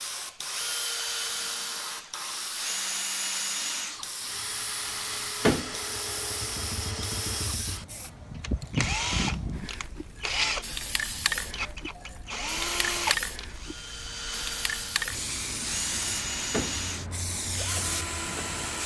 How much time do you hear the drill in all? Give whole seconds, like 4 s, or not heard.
19 s.